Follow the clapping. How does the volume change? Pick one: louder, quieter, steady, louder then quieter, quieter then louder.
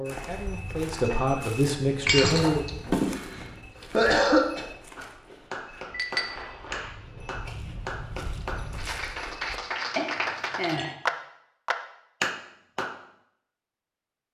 louder.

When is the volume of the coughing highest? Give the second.
4 s.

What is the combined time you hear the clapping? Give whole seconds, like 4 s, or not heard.
8 s.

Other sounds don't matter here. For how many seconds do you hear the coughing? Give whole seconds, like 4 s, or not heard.
2 s.